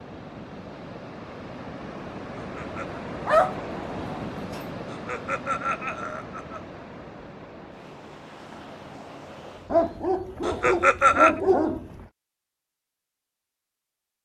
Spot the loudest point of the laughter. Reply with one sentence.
The loudest moment of the laughter is at 11 seconds.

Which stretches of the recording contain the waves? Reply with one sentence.
The waves can be heard from 0.0 to 10.1 s.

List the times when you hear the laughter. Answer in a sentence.
You can hear the laughter from 2.4 to 3.0 s, from 4.8 to 6.6 s and from 10.4 to 11.4 s.